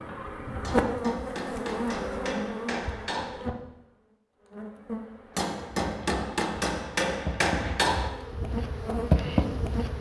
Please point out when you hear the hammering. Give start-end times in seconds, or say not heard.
0.6-3.4, 5.3-8.2.